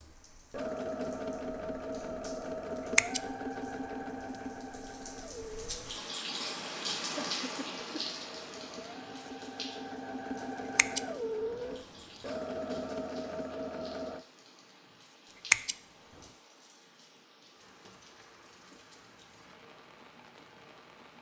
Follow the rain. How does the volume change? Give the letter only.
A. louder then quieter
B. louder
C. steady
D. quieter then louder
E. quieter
A.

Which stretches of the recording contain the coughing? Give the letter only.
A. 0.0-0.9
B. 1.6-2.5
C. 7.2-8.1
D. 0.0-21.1
C.